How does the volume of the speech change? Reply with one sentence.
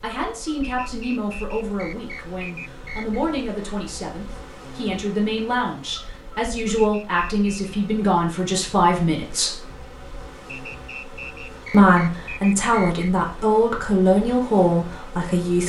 The loudness of the speech goes up.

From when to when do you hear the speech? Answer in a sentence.
The speech can be heard from 0.0 to 9.6 s and from 11.7 to 15.6 s.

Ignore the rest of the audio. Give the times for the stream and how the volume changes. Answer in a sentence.
You can't hear the stream here.